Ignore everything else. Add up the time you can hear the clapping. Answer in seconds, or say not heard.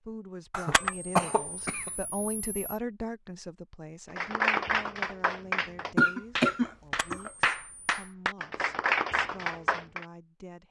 6 s.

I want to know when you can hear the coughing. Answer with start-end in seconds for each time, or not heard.
0.5-1.9, 6.0-7.3.